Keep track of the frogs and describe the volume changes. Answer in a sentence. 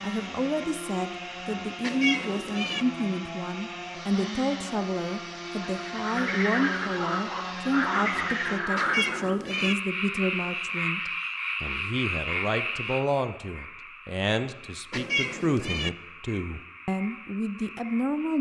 The loudness of the frogs goes down.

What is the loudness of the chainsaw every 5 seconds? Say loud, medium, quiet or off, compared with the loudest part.
loud, loud, off, off.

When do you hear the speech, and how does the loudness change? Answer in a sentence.
The speech can be heard from 0.0 to 18.3 s, at a steady volume.